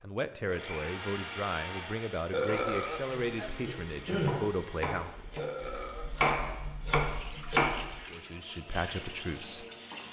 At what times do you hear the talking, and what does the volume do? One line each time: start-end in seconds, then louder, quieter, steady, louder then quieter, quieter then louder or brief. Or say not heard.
0.0-5.2 steady
8.1-9.7 brief.